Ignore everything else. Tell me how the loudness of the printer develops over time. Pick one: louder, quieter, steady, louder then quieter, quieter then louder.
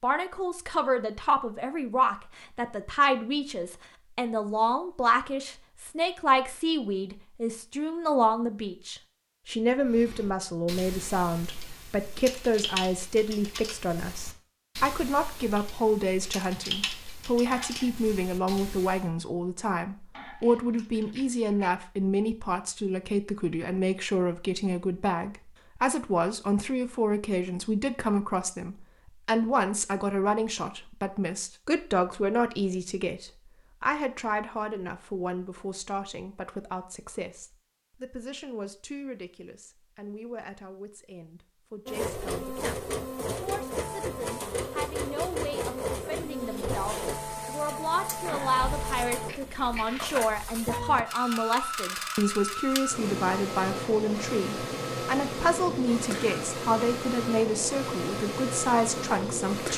steady.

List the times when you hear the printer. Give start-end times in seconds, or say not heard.
41.9-59.7.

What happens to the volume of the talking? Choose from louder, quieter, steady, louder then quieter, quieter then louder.
quieter then louder.